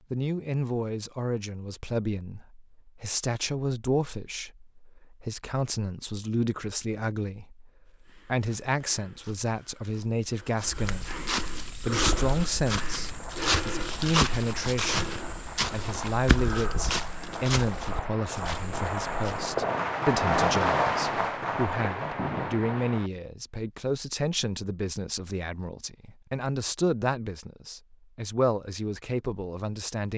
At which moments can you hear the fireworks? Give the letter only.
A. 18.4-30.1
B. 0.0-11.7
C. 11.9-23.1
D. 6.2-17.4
C.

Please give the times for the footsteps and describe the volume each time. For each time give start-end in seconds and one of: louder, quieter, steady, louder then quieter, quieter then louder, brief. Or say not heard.
7.9-19.6 louder then quieter.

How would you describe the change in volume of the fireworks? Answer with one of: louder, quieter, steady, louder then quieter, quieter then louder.
louder.